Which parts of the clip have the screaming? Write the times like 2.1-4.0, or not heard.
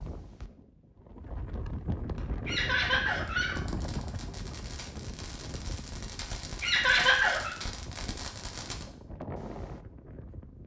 not heard.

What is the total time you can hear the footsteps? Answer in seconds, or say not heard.
not heard.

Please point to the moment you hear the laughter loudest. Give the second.
7 s.